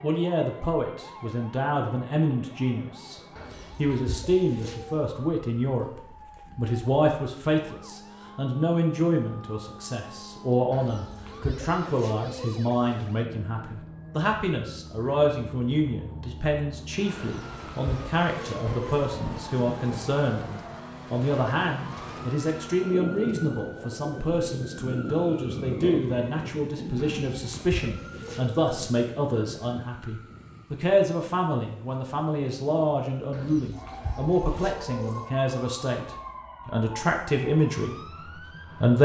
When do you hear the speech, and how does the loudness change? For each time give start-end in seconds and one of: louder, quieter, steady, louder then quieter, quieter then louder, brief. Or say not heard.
0.0-39.0 steady.